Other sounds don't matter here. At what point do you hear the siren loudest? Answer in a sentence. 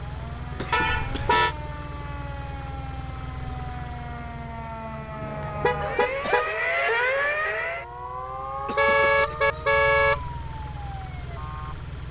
The volume of the siren peaks at 7 seconds.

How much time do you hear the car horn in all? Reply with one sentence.
The car horn can be heard for 4 seconds in total.